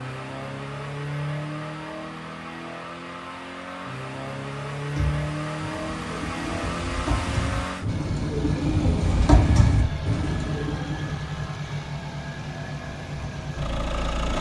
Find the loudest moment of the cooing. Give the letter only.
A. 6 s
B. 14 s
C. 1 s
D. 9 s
D.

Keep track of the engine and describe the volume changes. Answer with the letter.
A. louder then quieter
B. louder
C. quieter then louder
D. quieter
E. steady
E.